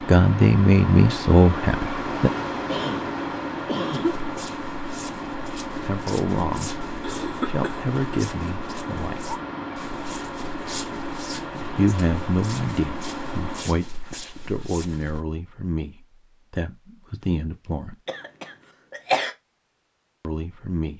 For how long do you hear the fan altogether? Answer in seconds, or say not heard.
14 s.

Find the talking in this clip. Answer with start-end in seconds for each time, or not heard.
0.1-2.3, 5.8-9.3, 11.8-17.9, 20.2-20.9.